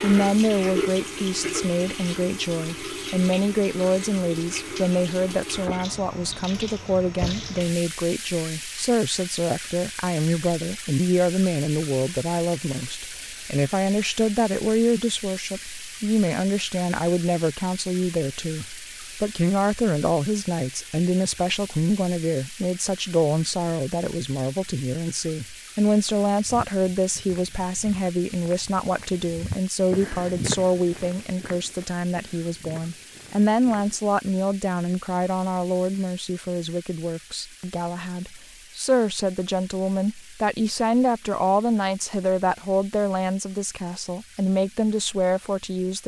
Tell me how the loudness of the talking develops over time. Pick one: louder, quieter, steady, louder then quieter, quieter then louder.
steady.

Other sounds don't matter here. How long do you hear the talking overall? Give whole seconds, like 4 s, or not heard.
46 s.